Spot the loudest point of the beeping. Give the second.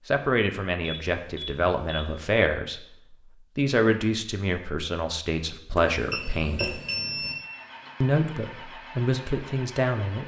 7 s.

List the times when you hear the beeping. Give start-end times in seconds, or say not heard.
0.8-2.3, 5.8-7.3.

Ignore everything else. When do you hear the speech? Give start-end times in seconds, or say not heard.
0.1-6.8, 8.0-10.2.